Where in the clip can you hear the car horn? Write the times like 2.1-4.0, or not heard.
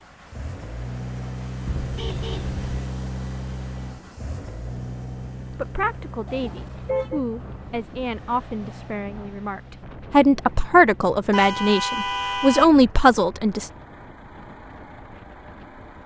1.6-2.5, 6.2-7.2, 11.3-12.7.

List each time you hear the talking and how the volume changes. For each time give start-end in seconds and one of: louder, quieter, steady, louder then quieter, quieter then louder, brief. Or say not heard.
5.5-13.7 louder.